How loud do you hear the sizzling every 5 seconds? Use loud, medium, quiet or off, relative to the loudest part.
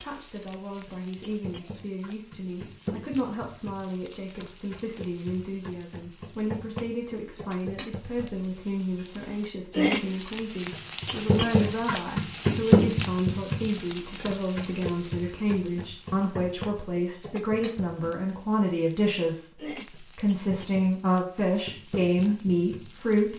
quiet, medium, loud, quiet, quiet.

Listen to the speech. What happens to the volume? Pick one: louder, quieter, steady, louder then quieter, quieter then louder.
louder.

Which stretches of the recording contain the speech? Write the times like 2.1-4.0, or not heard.
0.0-23.3.